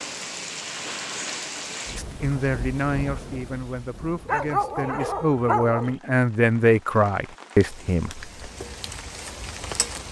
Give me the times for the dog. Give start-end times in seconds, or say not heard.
4.2-6.0.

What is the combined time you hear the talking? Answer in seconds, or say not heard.
6 s.